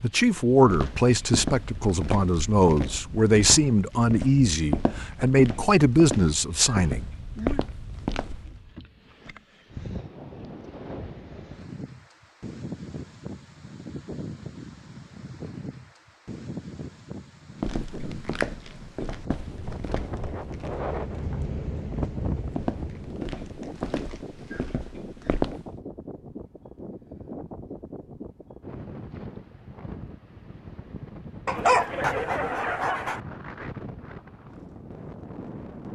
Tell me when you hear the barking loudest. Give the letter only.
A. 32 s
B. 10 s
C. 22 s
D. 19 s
A.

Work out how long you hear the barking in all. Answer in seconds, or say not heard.
2 s.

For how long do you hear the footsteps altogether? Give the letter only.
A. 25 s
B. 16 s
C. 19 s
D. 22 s
B.